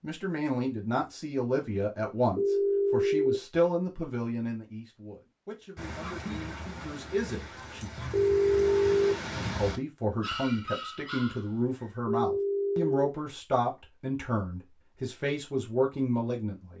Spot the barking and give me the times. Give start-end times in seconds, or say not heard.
5.8-12.0.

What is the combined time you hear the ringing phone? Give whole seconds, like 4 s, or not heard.
3 s.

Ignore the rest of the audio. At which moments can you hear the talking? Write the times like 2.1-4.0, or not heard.
0.0-7.9, 9.6-16.7.